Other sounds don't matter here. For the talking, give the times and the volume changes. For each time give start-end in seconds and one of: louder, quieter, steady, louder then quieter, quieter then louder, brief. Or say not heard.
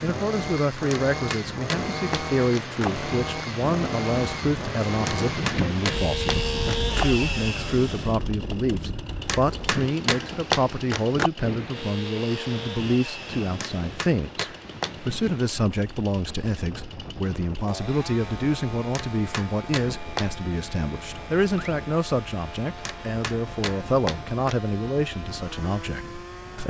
0.0-26.6 steady.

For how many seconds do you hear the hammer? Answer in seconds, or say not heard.
11 s.